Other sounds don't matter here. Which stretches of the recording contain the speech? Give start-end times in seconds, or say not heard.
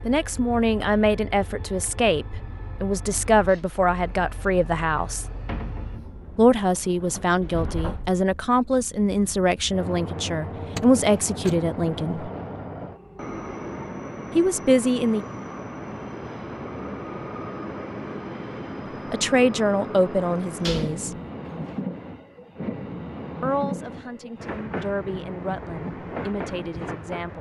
0.1-5.2, 6.3-12.3, 14.3-15.2, 19.1-21.1, 23.4-27.3.